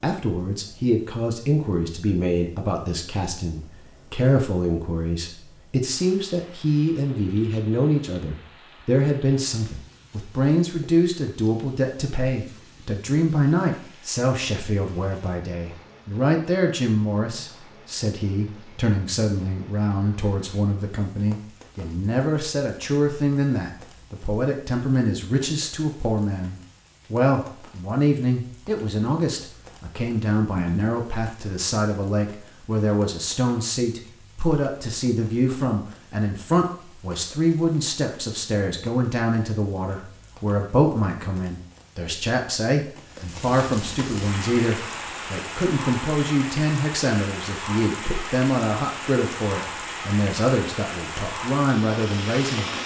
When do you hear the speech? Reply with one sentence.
The speech can be heard from 0.0 to 52.7 s.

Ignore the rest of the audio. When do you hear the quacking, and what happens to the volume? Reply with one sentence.
You can't hear the quacking here.